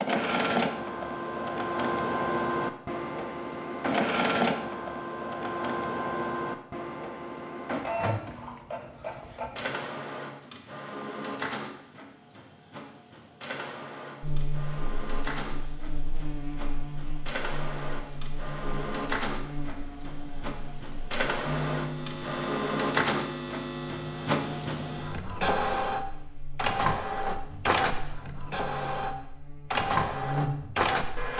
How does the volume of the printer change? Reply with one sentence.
The volume of the printer goes down, then up.